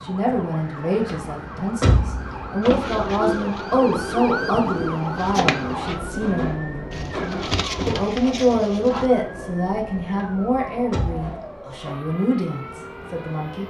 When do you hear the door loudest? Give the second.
2 s.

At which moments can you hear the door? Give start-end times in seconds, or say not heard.
1.1-2.5, 10.2-11.4.